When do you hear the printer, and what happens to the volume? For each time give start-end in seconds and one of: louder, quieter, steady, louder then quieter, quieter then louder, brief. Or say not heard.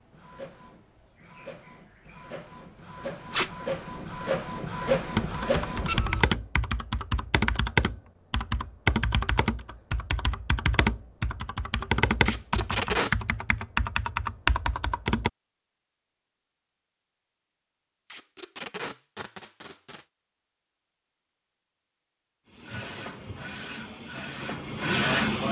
0.0-6.3 louder
22.5-25.4 brief.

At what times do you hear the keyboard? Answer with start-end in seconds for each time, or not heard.
5.2-15.3.